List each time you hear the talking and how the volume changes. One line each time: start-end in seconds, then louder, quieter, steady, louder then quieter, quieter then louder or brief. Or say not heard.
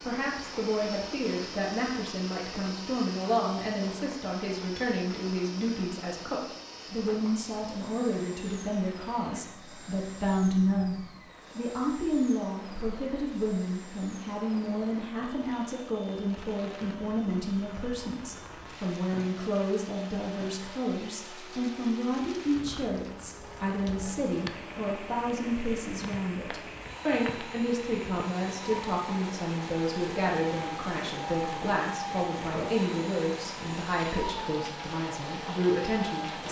0.0-36.4 steady.